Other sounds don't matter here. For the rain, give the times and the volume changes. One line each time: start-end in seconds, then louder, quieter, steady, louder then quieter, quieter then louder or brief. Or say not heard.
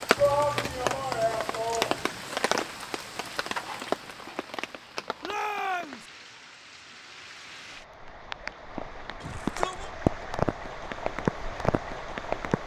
0.0-12.6 quieter then louder.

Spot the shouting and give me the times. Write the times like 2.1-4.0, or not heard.
0.1-2.4, 5.2-6.0, 9.2-9.9.